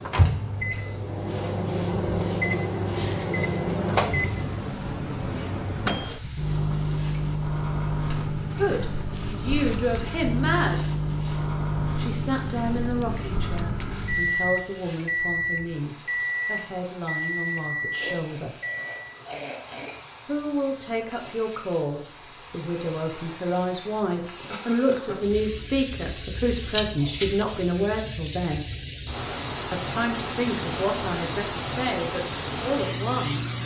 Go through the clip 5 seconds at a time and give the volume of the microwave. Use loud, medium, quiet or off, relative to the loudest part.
loud, loud, loud, loud, off, off, off.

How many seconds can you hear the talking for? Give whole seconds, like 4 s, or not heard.
21 s.